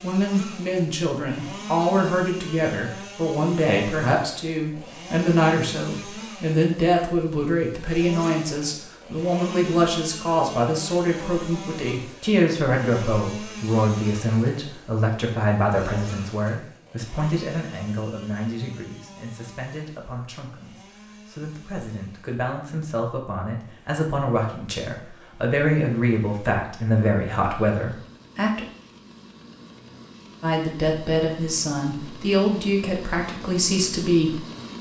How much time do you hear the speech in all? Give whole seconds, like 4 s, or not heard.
33 s.